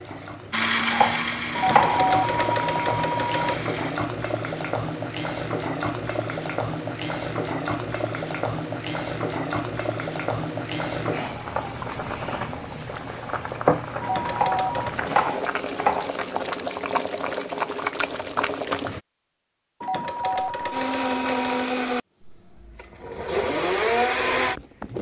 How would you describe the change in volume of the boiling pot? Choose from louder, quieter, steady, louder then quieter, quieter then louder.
steady.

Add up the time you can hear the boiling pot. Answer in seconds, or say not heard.
19 s.